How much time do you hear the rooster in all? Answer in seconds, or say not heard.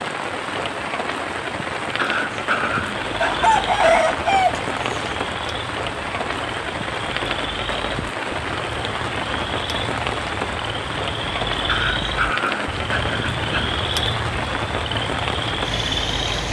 2 s.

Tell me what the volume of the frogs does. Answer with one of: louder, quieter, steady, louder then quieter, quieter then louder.
louder.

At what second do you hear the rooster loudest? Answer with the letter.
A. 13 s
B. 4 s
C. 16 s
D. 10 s
B.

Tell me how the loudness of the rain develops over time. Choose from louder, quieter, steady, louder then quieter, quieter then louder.
steady.